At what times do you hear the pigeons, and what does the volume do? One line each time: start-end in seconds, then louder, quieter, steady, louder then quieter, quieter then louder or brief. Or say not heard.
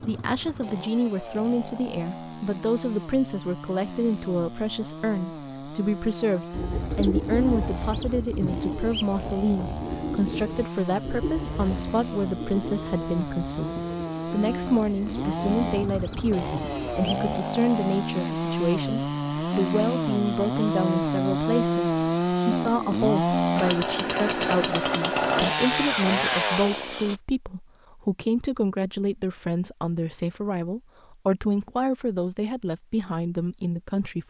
6.5-17.1 quieter.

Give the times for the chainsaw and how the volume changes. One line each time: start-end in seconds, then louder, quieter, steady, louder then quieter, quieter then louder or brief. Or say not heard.
0.0-27.1 louder.